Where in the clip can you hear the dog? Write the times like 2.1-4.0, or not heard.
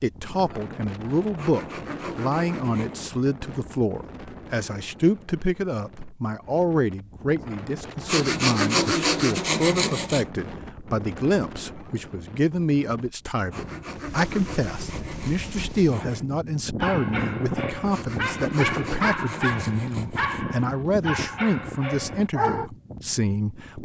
16.8-22.7.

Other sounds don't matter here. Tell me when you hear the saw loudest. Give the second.
9 s.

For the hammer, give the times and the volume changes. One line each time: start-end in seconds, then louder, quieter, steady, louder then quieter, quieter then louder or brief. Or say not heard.
not heard.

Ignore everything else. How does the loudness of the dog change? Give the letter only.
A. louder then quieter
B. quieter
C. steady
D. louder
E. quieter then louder
A.